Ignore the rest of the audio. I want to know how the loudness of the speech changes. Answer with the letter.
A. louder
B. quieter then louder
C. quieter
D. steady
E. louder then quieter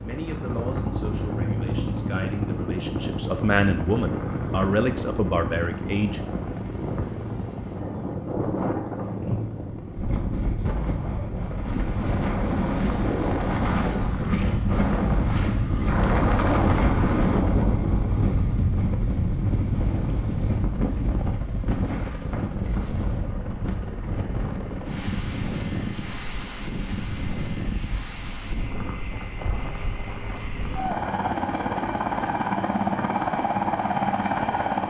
A.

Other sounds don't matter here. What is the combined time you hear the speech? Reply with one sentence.
You can hear the speech for 6 seconds altogether.